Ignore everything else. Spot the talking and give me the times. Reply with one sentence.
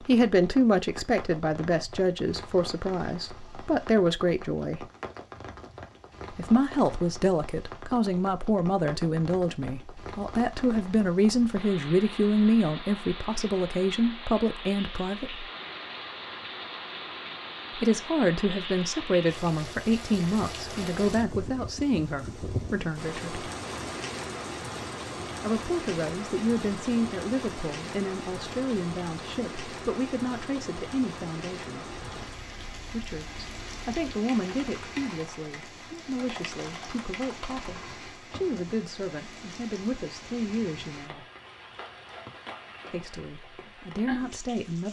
You can hear the talking from 0.1 to 4.8 s, from 6.3 to 15.4 s, from 17.8 to 23.4 s, from 25.4 to 31.9 s, from 32.9 to 41.2 s and from 42.9 to 44.8 s.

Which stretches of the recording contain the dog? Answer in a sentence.
The dog can't be heard in this clip.